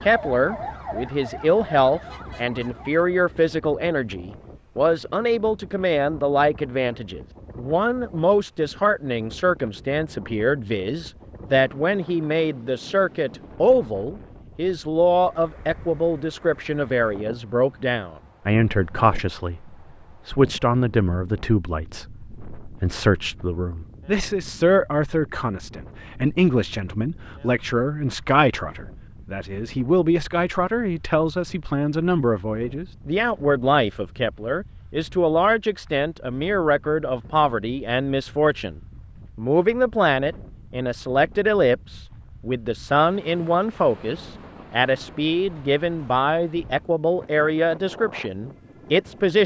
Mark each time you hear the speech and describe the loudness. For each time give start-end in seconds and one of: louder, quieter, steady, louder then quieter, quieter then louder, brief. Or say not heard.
0.0-49.4 steady.